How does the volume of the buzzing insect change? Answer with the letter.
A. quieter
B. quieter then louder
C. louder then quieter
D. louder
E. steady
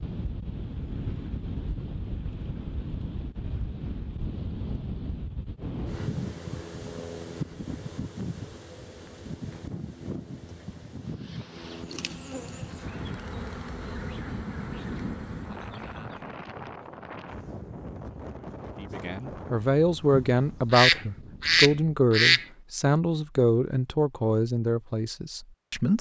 E.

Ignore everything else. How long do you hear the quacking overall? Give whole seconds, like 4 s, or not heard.
2 s.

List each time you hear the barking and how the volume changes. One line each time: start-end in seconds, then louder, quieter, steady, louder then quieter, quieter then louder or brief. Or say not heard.
not heard.